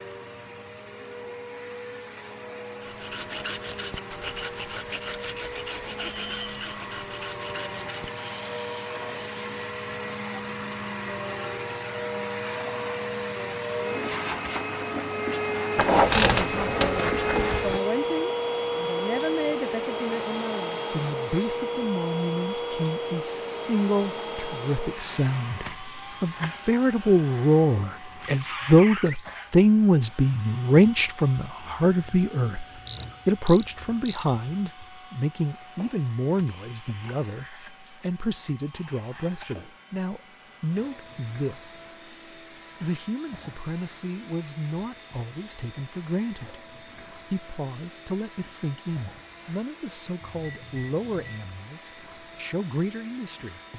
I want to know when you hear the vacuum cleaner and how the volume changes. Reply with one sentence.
You can hear the vacuum cleaner from 0.0 to 53.7 s, getting louder then quieter.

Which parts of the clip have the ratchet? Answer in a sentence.
The ratchet can be heard from 15.8 to 17.8 s and from 32.9 to 34.2 s.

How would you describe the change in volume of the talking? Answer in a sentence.
The loudness of the talking goes up, then down.